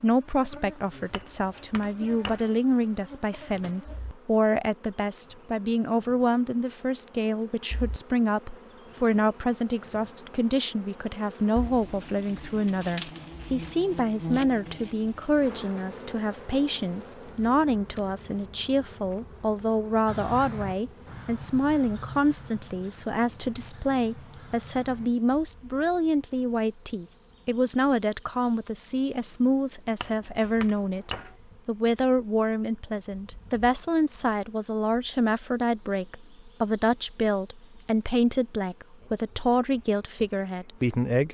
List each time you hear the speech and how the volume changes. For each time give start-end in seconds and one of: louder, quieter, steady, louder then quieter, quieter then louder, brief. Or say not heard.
0.0-41.2 steady.